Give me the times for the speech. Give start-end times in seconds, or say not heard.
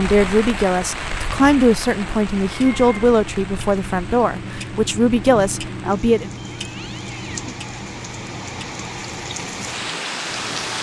0.0-6.3.